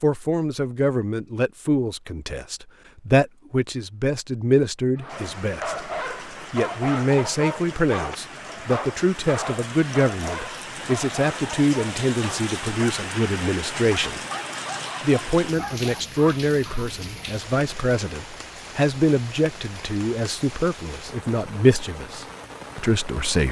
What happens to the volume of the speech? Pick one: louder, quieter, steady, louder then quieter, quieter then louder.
steady.